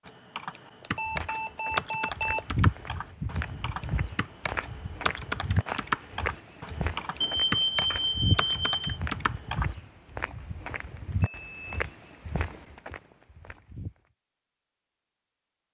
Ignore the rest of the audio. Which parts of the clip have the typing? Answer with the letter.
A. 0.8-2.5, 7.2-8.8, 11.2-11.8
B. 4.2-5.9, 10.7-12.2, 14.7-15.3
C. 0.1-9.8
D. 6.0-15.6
C.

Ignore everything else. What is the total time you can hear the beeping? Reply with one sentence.
You can hear the beeping for 4 seconds altogether.